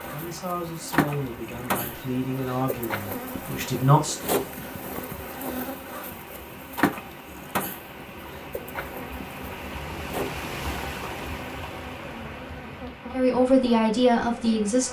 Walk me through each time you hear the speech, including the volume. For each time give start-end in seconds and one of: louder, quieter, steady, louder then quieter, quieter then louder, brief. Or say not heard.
0.0-4.2 steady
13.1-14.8 brief.